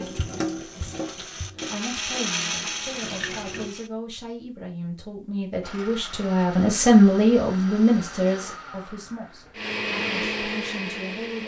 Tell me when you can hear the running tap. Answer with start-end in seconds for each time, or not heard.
0.0-3.7.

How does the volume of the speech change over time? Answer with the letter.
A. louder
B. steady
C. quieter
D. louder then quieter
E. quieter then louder
D.